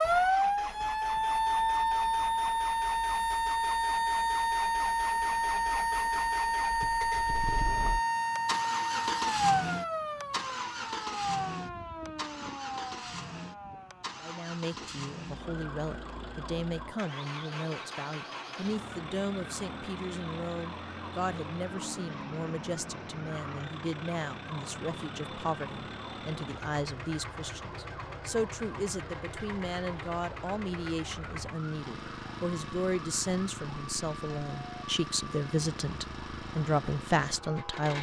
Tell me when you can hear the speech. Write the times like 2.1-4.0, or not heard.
14.2-37.9.